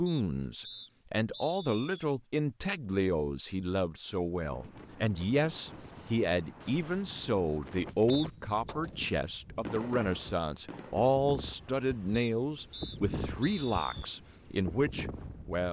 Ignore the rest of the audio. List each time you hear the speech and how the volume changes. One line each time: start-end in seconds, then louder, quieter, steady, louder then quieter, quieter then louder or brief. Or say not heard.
0.0-15.6 steady.